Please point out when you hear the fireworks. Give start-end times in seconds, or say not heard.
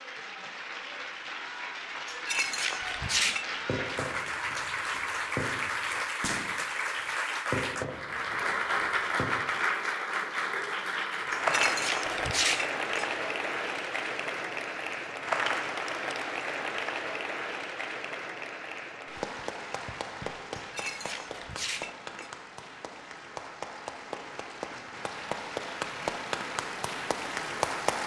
3.0-6.7, 7.5-9.4.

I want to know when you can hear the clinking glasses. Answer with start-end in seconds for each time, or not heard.
2.0-3.5, 11.3-13.2, 20.6-22.3.